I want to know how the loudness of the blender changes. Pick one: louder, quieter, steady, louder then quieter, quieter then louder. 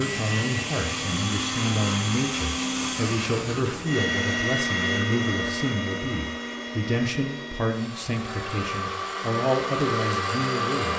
quieter then louder.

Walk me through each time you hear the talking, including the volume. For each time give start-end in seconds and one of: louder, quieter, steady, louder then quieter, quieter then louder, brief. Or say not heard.
0.0-10.9 steady.